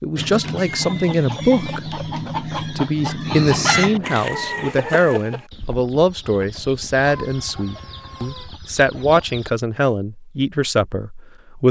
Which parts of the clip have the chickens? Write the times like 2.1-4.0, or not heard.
0.1-9.5.